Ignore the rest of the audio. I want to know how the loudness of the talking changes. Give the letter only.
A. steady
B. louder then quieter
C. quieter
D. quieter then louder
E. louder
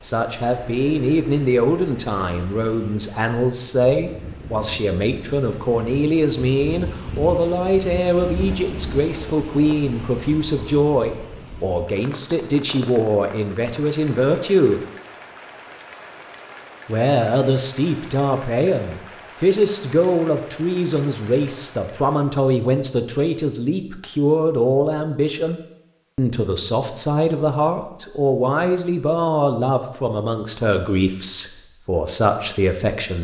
A.